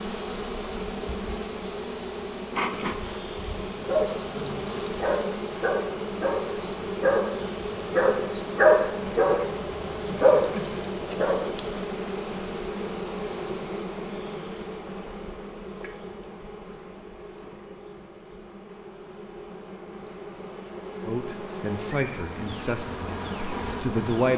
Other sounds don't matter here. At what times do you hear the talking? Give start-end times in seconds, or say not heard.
21.1-24.3.